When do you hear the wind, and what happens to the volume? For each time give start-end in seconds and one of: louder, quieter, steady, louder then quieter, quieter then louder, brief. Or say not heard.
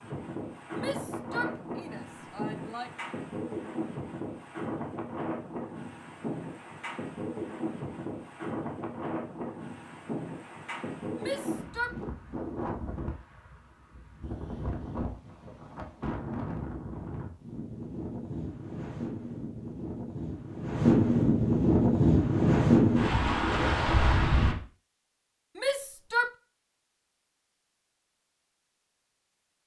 0.0-24.6 louder.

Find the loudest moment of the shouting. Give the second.
26 s.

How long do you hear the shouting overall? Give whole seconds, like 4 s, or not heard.
4 s.